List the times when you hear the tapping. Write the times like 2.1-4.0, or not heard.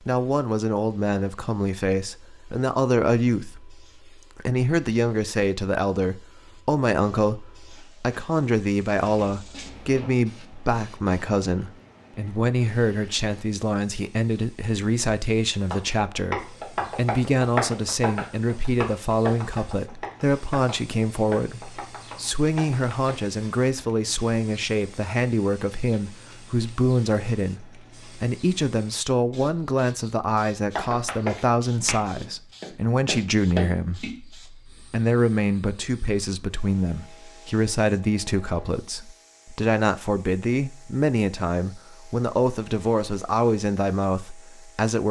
15.6-23.1, 30.8-34.1.